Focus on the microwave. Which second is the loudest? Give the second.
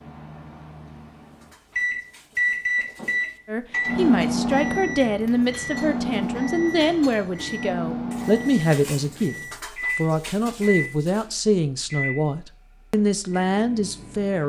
4 s.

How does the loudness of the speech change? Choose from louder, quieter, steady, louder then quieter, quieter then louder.
steady.